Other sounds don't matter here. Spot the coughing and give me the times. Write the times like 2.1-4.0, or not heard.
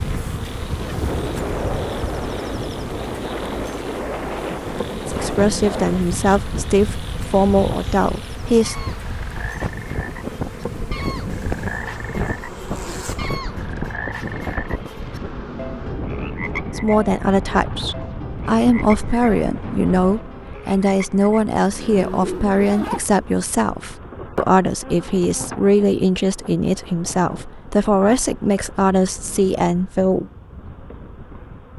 not heard.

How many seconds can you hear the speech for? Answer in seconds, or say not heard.
17 s.